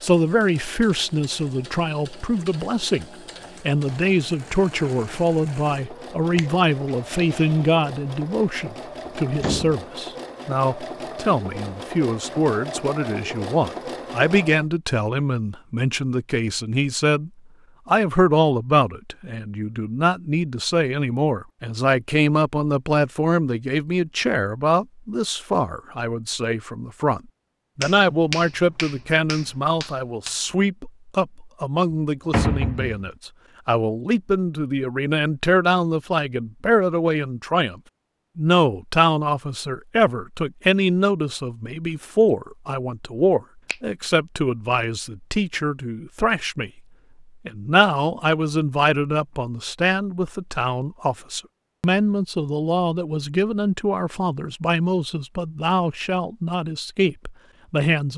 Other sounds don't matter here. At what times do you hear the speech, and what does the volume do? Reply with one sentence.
The speech can be heard from 0.0 to 46.8 s, at a steady volume; and from 47.5 to 58.1 s, at a steady volume.